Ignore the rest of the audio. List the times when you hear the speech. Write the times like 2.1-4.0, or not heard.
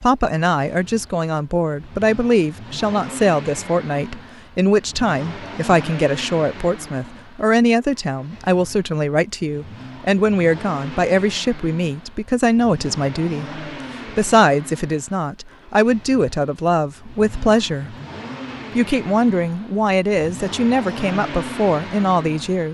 0.0-17.9, 18.8-22.6.